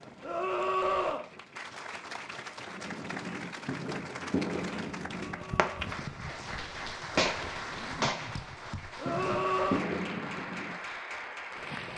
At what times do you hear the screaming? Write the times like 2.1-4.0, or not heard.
0.2-1.2, 5.2-5.9, 8.9-9.9.